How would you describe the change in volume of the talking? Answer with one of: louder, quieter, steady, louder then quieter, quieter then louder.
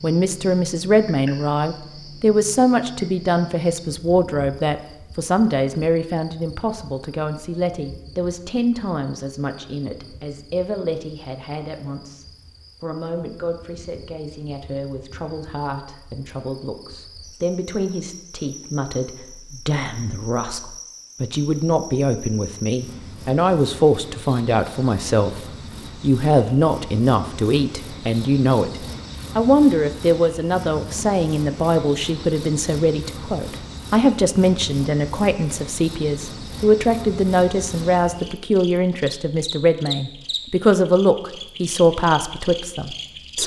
quieter then louder.